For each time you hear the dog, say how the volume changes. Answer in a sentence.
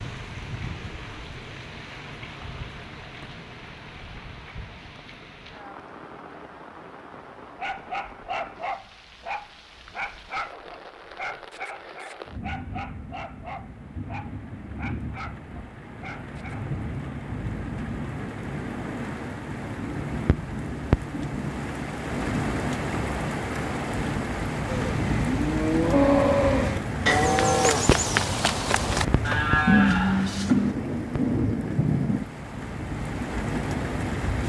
You can hear the dog from 7.5 to 16.7 s, getting quieter.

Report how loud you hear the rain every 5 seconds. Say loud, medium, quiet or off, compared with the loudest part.
quiet, quiet, quiet, medium, loud, loud, loud.